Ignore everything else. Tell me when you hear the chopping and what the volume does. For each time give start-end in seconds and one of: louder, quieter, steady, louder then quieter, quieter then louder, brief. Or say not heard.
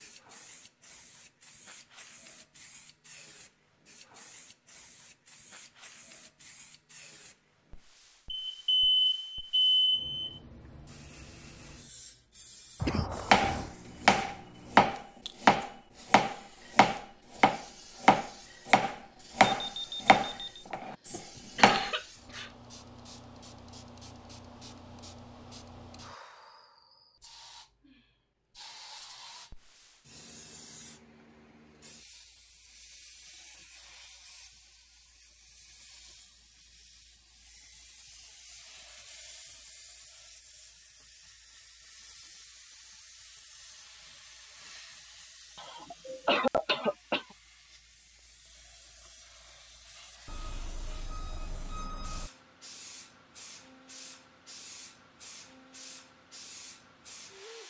13.3-21.9 quieter.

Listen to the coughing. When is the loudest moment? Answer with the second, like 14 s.
46 s.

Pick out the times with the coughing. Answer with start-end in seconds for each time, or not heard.
12.8-13.8, 21.6-22.5, 45.5-47.2.